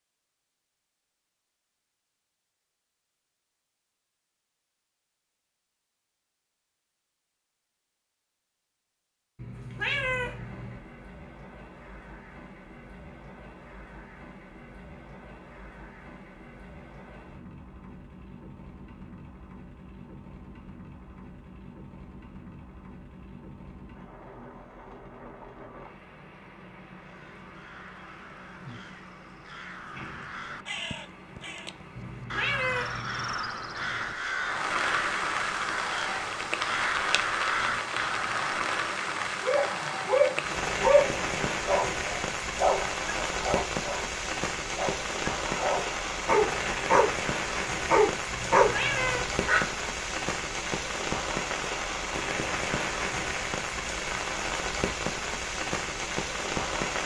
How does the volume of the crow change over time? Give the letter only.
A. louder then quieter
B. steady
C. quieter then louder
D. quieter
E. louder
E.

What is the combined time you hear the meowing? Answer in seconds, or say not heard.
4 s.